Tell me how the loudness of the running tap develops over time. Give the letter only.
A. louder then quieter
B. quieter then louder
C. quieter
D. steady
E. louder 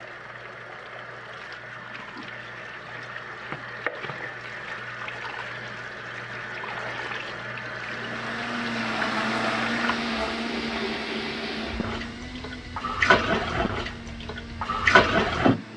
E.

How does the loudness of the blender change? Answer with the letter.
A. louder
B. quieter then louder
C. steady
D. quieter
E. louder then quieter
D.